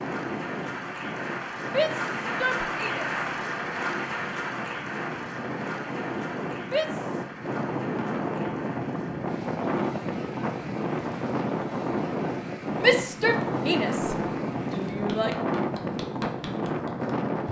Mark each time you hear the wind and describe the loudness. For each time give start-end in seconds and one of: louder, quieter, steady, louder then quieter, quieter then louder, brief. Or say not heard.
0.0-17.4 louder.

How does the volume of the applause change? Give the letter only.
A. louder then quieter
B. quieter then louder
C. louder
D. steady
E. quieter
E.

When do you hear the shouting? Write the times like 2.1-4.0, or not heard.
1.6-3.1, 6.6-7.2, 12.8-15.3.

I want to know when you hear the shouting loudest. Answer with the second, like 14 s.
13 s.